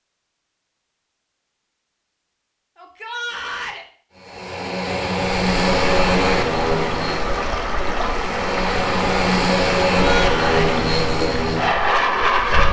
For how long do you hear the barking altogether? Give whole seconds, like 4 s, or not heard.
not heard.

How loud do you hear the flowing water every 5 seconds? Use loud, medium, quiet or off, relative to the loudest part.
off, loud, loud.